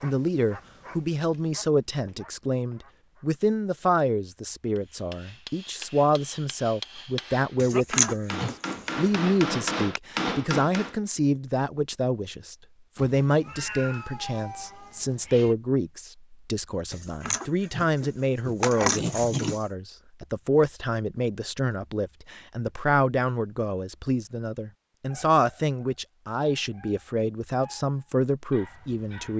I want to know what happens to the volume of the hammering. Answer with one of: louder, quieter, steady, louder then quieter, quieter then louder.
louder.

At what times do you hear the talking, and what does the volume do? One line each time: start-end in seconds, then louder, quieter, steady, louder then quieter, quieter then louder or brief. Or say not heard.
0.0-29.3 steady.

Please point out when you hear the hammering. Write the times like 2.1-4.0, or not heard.
4.8-10.9.